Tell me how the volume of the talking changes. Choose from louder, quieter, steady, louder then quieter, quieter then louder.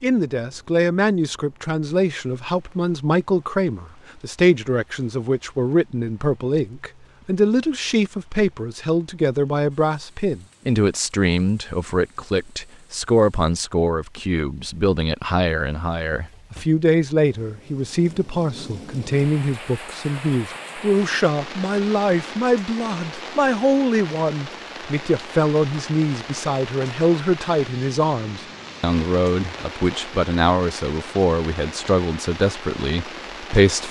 steady.